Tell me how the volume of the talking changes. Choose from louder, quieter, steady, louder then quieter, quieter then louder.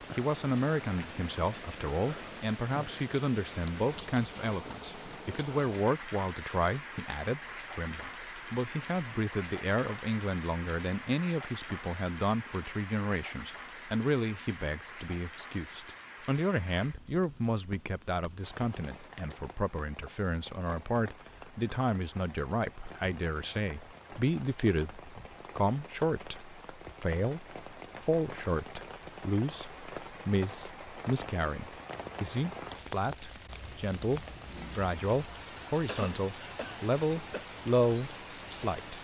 steady.